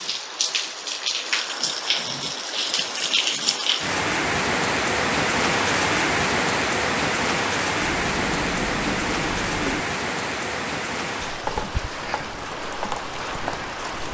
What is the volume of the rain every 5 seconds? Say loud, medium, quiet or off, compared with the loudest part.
loud, loud, medium.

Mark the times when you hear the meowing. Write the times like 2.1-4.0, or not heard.
7.8-9.8.